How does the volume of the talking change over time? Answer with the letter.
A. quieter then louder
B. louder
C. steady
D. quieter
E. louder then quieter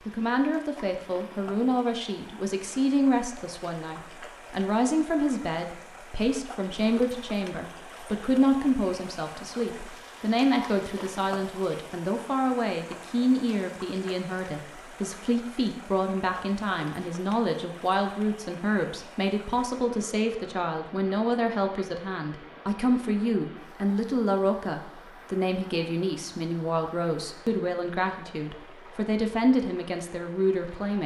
C.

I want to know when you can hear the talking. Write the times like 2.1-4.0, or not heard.
0.1-31.0.